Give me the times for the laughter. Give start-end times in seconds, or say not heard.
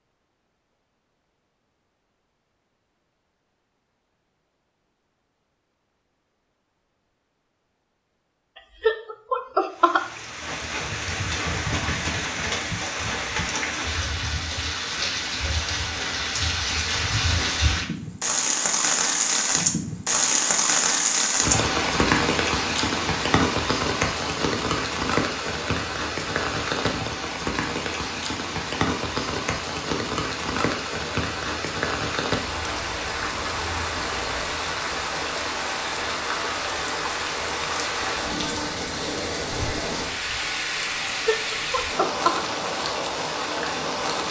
8.8-10.2, 41.2-42.4.